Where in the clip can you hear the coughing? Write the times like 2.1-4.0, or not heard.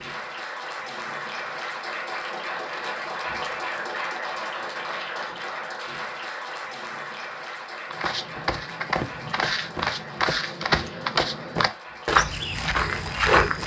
not heard.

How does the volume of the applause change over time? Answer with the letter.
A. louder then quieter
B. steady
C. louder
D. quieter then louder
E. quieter
E.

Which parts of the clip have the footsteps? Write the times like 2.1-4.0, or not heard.
7.9-13.6.